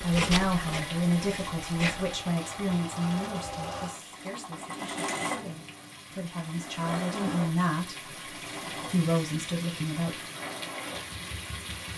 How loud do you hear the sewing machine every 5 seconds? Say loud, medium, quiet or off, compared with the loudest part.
loud, loud, medium.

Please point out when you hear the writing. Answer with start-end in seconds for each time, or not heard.
0.0-2.1.